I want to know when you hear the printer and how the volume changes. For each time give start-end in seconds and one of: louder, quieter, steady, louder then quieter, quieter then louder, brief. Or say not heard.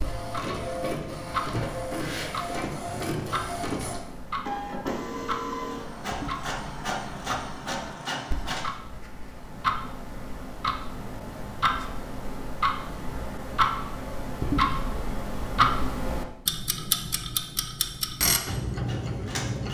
0.0-8.7 steady
18.4-19.6 brief.